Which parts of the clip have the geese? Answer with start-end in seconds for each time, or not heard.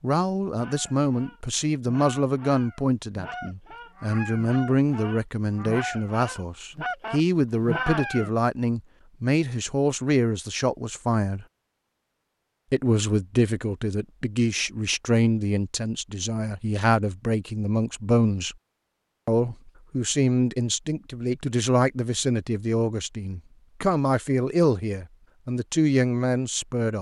0.6-8.3.